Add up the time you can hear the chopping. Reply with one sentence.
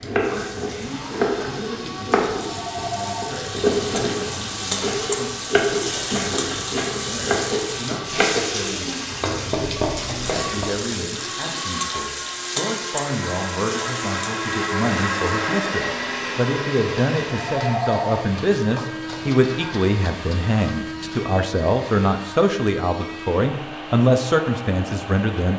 The chopping can be heard for 11 seconds in total.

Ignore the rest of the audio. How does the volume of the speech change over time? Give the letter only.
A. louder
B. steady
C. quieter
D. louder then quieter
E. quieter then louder
A.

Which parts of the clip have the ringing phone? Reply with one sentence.
You can hear the ringing phone from 2.4 to 3.3 s and from 17.3 to 18.1 s.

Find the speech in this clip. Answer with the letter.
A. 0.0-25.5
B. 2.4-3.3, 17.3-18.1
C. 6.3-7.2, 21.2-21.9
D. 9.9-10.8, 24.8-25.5
A.